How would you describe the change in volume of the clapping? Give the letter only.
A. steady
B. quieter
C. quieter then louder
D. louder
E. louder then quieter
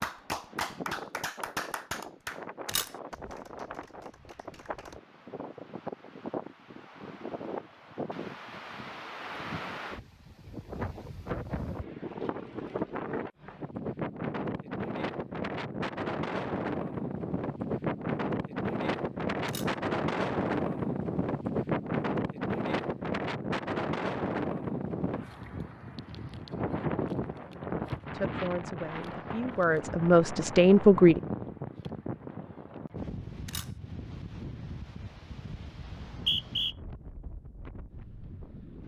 B.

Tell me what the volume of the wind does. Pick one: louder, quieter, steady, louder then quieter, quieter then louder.
louder then quieter.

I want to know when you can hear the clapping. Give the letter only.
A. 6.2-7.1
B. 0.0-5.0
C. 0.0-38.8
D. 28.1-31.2
B.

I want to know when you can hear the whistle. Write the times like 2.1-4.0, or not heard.
35.9-36.8.